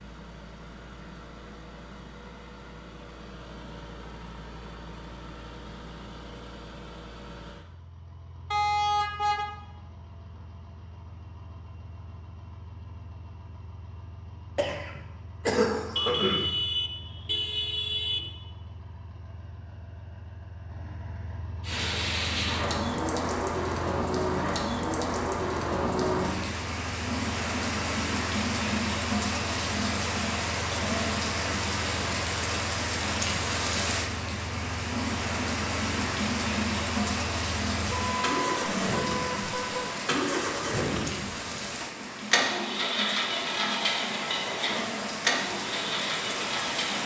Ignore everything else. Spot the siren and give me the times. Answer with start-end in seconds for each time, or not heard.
not heard.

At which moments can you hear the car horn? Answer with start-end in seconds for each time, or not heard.
8.5-9.4, 15.9-18.2, 37.9-39.9.